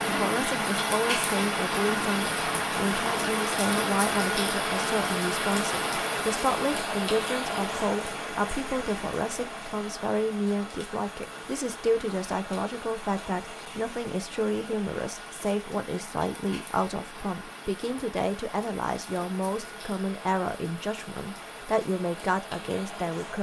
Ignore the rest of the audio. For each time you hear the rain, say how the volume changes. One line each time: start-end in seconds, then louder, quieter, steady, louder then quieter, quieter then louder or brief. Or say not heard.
0.0-23.3 quieter.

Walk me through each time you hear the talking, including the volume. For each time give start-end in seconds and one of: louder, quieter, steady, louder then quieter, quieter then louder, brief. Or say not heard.
0.1-23.3 steady.